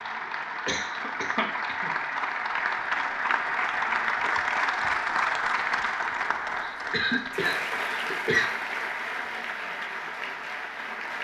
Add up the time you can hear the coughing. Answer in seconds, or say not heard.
3 s.